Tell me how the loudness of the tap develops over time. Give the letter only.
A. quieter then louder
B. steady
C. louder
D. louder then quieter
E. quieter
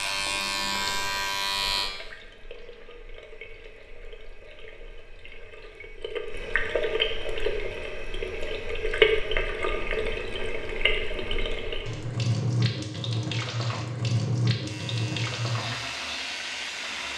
C.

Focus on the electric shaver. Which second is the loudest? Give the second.
1 s.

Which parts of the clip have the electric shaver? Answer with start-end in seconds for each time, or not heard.
0.0-1.9, 14.6-17.1.